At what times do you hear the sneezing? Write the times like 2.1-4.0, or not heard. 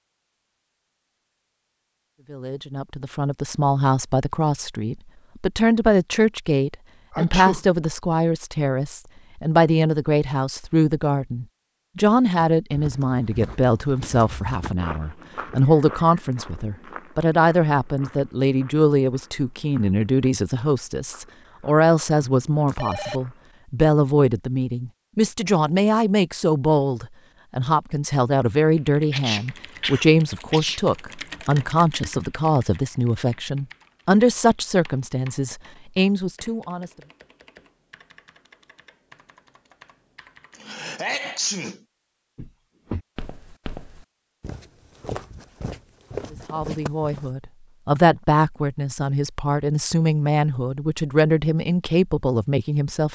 7.1-7.7, 29.1-30.8, 40.5-41.8.